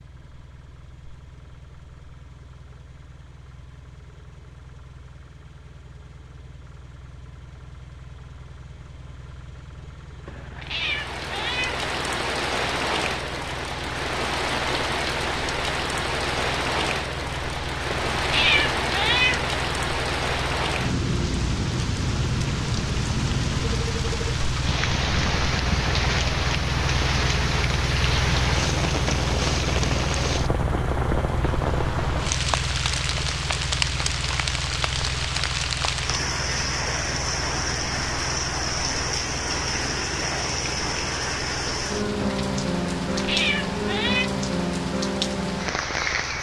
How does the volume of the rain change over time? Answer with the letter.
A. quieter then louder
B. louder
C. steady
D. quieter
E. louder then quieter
C.